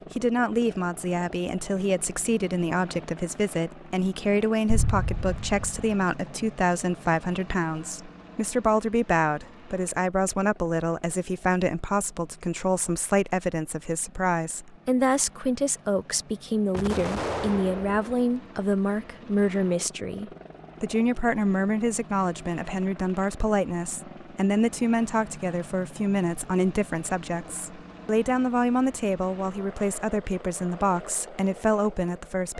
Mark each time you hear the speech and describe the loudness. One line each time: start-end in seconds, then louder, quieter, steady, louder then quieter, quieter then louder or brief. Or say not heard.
0.1-32.5 steady.